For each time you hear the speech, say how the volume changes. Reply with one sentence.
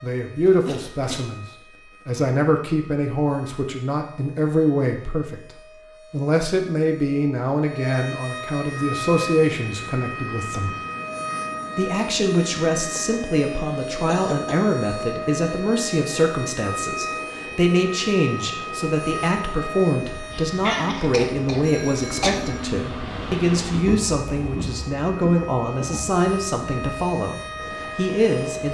You can hear the speech from 0.0 to 10.8 s, at a steady volume; and from 11.8 to 28.6 s, at a steady volume.